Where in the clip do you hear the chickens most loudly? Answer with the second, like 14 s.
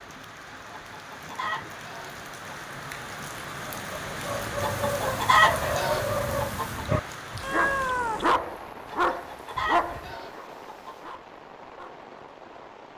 5 s.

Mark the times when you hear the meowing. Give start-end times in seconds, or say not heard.
7.4-8.3.